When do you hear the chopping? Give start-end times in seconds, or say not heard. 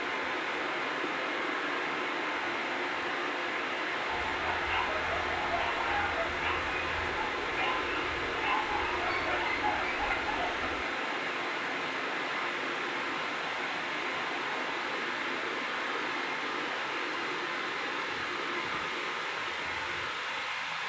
not heard.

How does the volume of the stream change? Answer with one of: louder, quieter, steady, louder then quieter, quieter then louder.
steady.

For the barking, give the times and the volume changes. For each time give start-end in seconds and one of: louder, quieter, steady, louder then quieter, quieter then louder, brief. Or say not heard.
4.0-10.8 steady.